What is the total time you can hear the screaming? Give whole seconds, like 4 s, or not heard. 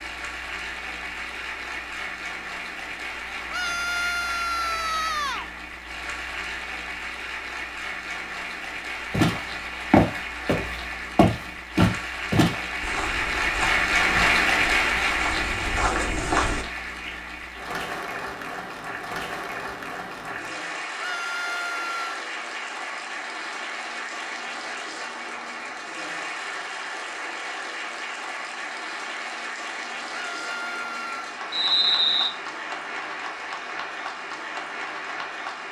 4 s.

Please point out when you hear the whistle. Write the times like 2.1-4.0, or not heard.
31.5-32.3.